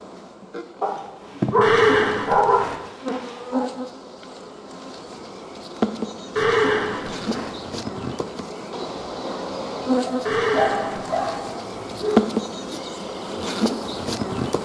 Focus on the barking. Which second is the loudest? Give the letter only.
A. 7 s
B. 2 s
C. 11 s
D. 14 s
B.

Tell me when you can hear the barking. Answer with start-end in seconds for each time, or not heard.
0.8-3.6, 10.0-12.3.